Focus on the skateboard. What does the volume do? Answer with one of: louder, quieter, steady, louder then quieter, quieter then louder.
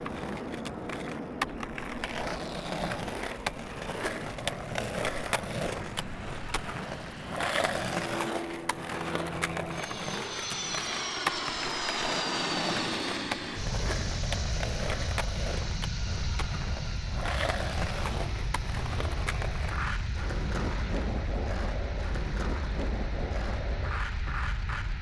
steady.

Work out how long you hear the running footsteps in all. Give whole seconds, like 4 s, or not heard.
not heard.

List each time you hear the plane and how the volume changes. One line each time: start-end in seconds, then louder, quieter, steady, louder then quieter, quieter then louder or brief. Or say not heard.
0.0-24.9 louder then quieter.